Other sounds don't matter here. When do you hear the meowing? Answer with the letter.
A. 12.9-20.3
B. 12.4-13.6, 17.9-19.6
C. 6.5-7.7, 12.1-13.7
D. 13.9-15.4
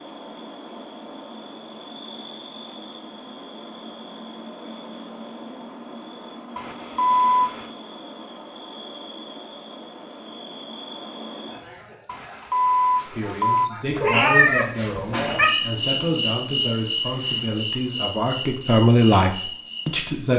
D.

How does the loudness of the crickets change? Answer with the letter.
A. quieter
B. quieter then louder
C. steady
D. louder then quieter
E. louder
E.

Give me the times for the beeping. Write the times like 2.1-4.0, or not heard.
6.5-7.7, 12.1-13.7.